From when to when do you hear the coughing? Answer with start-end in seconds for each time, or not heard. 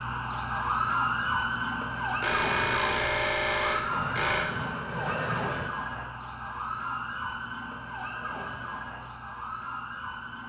not heard.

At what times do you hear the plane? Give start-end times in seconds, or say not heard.
3.9-5.7.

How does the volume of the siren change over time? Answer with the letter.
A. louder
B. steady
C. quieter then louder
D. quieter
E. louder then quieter
D.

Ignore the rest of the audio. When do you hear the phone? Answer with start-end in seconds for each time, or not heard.
2.2-4.5.